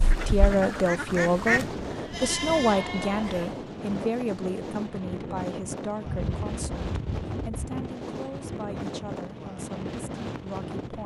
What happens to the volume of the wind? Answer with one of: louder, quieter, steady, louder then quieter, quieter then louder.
steady.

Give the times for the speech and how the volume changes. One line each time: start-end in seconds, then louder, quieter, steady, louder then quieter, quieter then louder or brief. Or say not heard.
0.1-11.0 quieter.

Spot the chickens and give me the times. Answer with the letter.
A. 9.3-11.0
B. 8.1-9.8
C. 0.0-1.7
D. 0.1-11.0
C.